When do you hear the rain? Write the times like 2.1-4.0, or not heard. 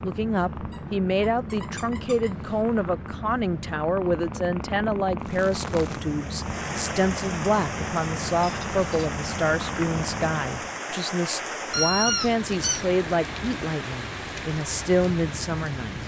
5.2-16.0.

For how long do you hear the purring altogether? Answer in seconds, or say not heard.
11 s.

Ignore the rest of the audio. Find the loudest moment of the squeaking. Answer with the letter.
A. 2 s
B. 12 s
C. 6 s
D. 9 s
B.